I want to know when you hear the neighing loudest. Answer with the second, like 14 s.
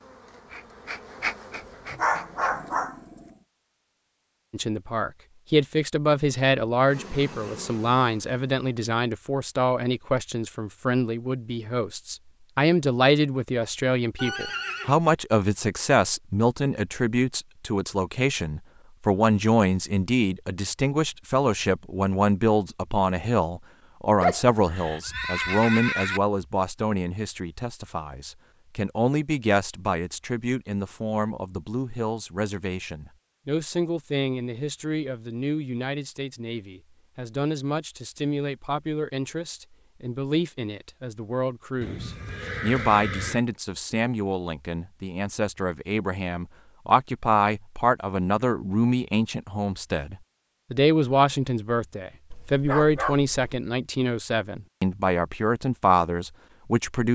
26 s.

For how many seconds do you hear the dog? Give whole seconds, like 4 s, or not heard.
4 s.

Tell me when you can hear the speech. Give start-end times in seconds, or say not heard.
4.5-57.1.